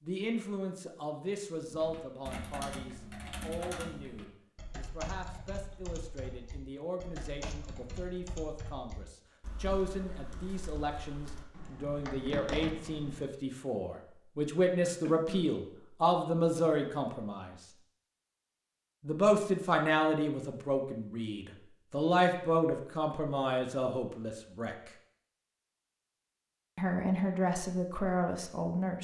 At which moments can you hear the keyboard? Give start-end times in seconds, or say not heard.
1.6-13.3.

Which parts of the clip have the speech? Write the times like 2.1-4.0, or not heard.
0.0-17.5, 19.0-24.8, 26.8-28.9.